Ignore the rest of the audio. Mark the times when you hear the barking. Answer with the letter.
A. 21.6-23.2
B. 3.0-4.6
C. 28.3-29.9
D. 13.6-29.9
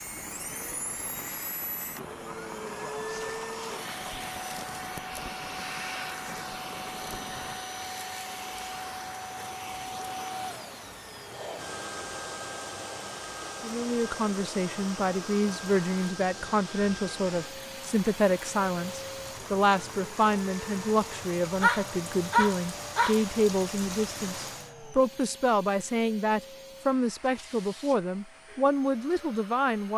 A.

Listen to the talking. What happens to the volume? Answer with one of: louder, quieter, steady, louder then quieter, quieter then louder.
steady.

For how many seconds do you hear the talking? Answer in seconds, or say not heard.
16 s.